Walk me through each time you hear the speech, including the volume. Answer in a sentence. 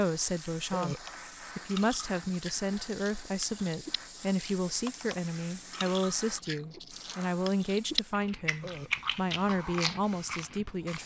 The speech can be heard from 0.0 to 11.0 s, at a steady volume.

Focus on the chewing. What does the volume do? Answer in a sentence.
The loudness of the chewing goes up.